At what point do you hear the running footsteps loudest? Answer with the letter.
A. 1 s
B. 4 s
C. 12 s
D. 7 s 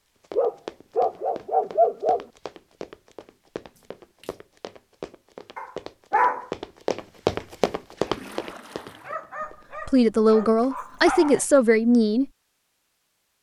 D.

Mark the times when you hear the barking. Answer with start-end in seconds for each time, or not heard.
0.3-2.2, 5.5-6.5, 9.1-11.4.